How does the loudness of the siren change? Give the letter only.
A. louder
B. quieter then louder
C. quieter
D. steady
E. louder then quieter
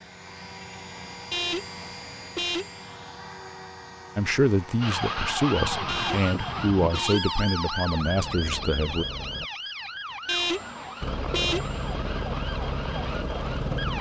C.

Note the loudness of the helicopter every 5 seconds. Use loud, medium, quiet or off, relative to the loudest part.
medium, medium, loud.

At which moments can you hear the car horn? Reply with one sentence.
You can hear the car horn from 1.3 to 2.9 s, from 5.8 to 7.4 s and from 10.2 to 11.8 s.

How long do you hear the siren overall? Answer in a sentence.
You can hear the siren for 9 seconds altogether.